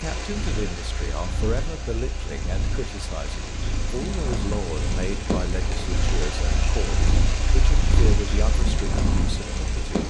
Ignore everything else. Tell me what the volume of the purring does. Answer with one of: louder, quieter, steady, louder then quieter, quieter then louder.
louder.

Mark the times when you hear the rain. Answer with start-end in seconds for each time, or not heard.
0.0-10.0.